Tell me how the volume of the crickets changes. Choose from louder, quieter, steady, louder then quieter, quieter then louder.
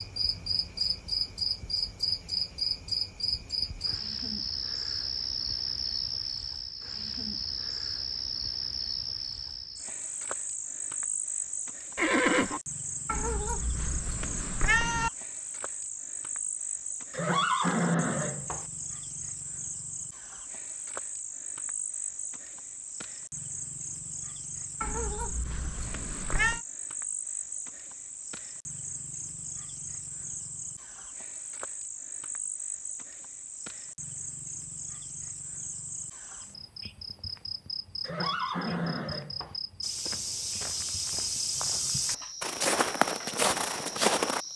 quieter.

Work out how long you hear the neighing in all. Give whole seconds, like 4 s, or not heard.
4 s.